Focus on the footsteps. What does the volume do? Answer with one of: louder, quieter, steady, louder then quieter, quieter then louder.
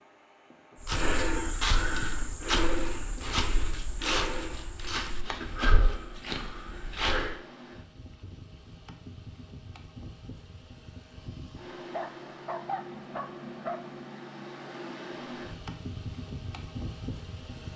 quieter.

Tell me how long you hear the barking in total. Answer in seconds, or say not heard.
2 s.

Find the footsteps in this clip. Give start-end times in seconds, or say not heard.
0.8-7.4.